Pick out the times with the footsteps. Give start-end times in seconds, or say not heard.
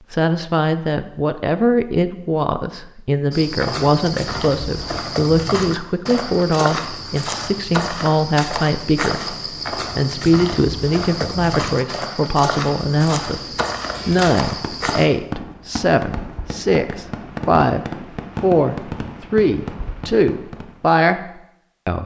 3.3-15.1.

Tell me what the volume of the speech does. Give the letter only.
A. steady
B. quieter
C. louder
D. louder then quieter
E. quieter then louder
A.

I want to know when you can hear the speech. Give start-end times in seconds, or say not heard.
0.1-22.0.